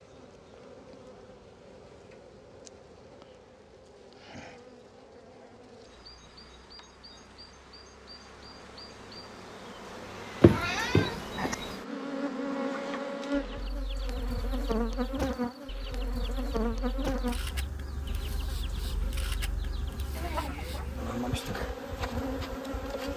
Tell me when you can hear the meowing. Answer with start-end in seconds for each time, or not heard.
10.4-11.6.